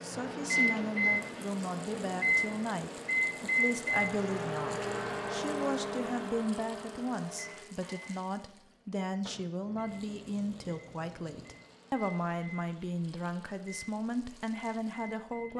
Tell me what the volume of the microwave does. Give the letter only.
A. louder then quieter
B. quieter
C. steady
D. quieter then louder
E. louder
B.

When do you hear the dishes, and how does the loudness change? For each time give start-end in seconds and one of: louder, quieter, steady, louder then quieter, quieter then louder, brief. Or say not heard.
not heard.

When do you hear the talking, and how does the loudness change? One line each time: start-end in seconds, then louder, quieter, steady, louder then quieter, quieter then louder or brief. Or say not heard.
0.0-15.5 steady.